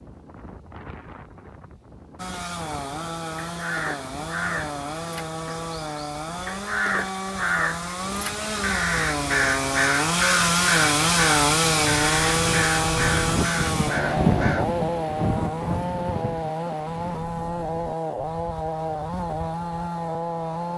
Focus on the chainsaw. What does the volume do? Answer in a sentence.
The volume of the chainsaw goes up, then down.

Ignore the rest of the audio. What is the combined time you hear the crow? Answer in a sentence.
The crow can be heard for 11 seconds in total.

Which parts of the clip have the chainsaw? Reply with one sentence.
You can hear the chainsaw from 2.1 to 20.7 s.